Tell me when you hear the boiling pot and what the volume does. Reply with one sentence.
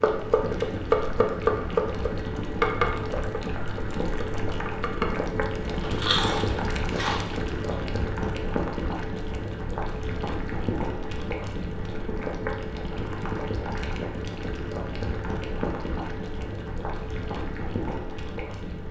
The boiling pot can be heard from 0.0 to 18.8 s, at a steady volume.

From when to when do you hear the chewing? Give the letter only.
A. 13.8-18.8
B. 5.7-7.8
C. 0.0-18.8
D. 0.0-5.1
B.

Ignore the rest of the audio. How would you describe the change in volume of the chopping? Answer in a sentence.
The loudness of the chopping goes down.